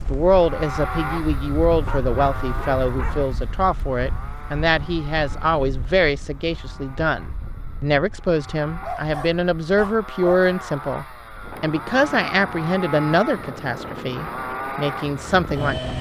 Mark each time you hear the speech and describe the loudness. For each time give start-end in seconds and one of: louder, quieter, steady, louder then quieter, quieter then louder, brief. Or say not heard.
0.0-15.9 steady.